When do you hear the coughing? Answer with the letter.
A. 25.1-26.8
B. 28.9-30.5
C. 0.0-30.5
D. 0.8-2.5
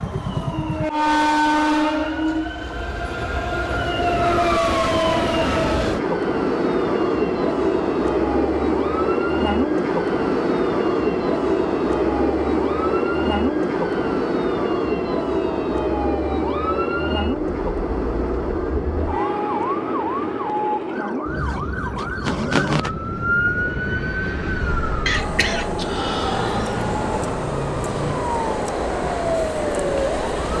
A.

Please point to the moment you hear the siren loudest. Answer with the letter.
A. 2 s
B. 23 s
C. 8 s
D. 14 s
B.